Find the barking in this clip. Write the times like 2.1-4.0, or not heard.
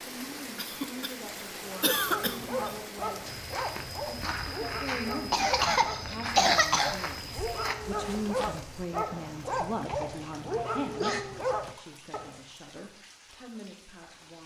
1.6-12.4.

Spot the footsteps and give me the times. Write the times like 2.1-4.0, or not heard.
3.2-8.8.